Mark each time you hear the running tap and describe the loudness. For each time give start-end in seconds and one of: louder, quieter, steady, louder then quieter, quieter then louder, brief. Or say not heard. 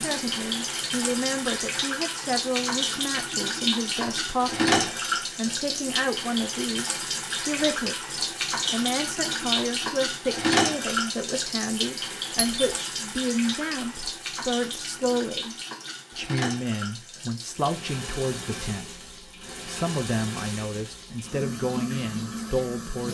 0.0-23.1 quieter.